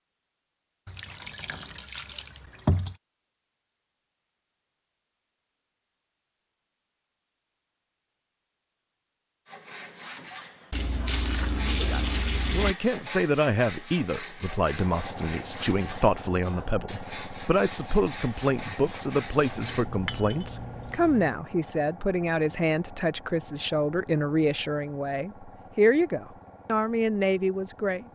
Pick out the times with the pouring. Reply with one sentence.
The pouring can be heard from 0.8 to 3.0 s, from 10.7 to 12.8 s and from 19.6 to 21.4 s.